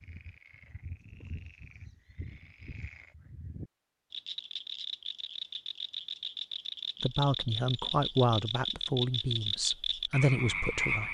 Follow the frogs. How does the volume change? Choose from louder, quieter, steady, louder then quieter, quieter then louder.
louder.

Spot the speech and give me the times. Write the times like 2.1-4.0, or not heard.
7.0-11.0.